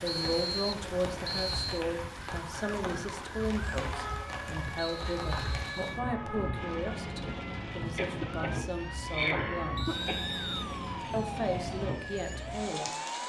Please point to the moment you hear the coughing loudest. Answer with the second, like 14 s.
9 s.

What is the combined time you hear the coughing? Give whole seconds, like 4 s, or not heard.
2 s.